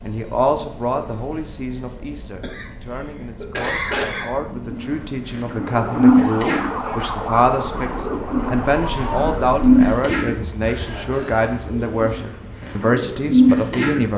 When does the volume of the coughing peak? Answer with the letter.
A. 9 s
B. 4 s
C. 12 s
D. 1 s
B.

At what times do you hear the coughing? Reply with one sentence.
You can hear the coughing from 2.4 to 4.3 s and from 10.8 to 11.6 s.